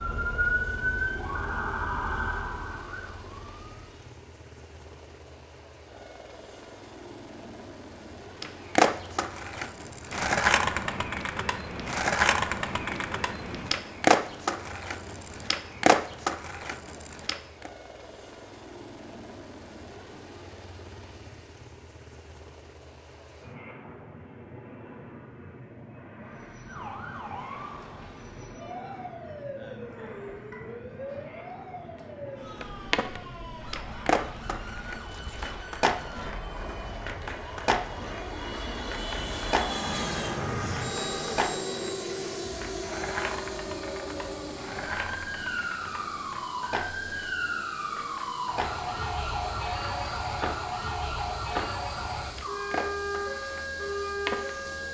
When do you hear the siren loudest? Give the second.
1 s.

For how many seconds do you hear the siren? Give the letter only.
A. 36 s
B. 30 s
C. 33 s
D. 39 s
C.